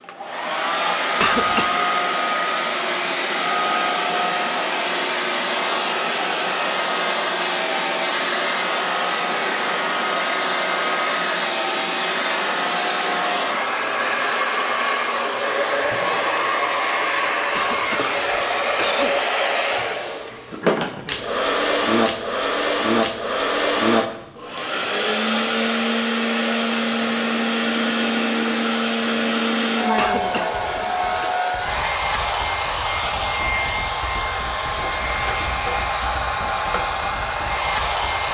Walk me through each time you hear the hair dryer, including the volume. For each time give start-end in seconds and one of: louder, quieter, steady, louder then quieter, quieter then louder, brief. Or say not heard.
0.0-38.3 steady.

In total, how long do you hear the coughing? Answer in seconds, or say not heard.
4 s.